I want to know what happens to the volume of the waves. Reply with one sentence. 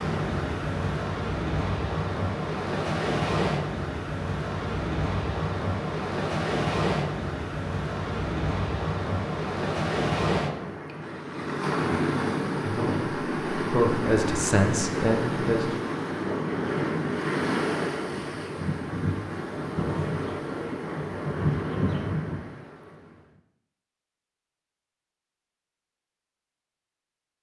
The loudness of the waves stays about the same.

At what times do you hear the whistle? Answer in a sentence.
The whistle can't be heard in this clip.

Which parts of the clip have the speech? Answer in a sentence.
The speech can be heard from 12.6 to 15.8 s.